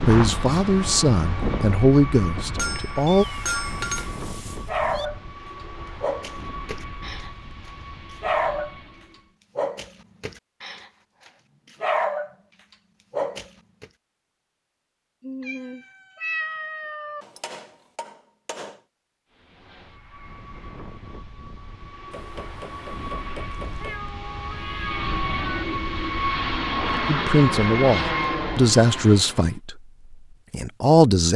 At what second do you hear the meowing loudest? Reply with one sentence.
The loudest moment of the meowing is at 16 seconds.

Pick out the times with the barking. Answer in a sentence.
You can hear the barking from 4.7 to 5.2 s, from 6.0 to 8.8 s, from 9.6 to 12.3 s and from 13.1 to 13.8 s.